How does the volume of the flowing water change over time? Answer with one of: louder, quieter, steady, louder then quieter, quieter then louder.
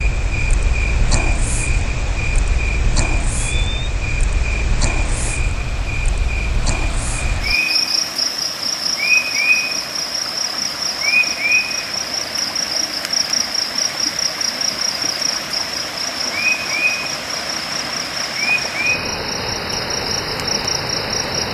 louder.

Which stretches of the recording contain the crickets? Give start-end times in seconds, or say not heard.
0.0-21.4.